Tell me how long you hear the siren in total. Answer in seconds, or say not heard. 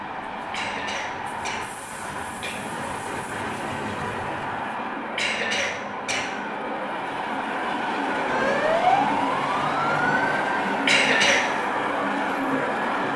5 s.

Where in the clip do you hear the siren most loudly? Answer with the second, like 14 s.
9 s.